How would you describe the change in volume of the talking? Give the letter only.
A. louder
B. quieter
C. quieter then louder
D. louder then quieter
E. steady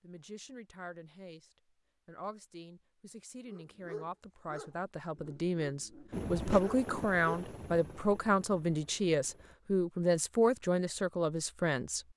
A.